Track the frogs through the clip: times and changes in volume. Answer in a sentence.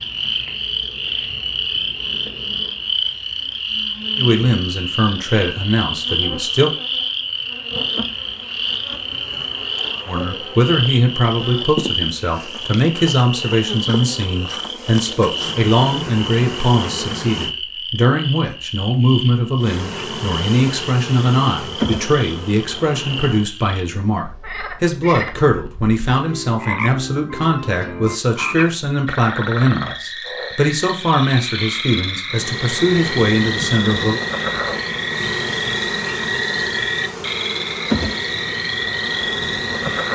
You can hear the frogs from 0.0 to 40.0 s, getting quieter then louder.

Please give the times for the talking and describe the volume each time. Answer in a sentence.
You can hear the talking briefly from 4.2 to 6.7 s; and from 10.1 to 34.2 s, at a steady volume.